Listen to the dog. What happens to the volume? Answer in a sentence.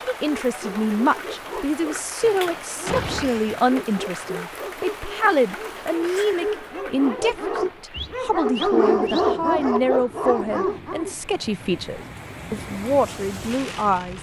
The volume of the dog goes up.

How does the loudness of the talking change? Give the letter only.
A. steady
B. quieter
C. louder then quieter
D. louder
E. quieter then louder
A.